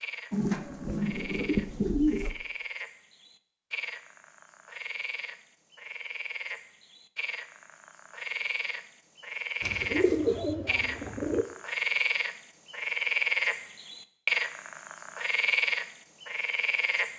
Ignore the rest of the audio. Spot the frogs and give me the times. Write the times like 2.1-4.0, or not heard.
0.0-17.1.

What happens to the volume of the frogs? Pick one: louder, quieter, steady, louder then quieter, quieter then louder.
louder.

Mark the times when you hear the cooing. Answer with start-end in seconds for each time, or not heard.
0.3-2.4, 9.6-11.4.